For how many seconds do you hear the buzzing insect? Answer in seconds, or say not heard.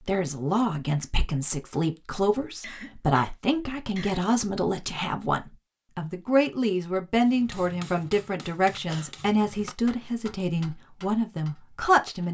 not heard.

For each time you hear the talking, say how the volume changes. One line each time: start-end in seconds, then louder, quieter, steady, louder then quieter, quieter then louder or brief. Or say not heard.
0.1-12.2 steady.